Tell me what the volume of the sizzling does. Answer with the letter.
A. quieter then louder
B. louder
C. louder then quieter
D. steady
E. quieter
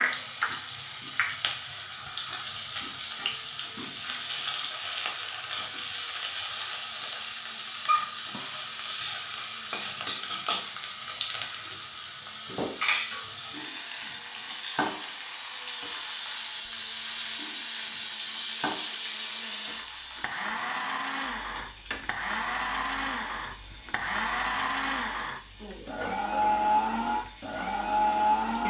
E.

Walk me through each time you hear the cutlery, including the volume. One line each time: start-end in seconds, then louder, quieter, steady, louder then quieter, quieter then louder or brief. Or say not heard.
not heard.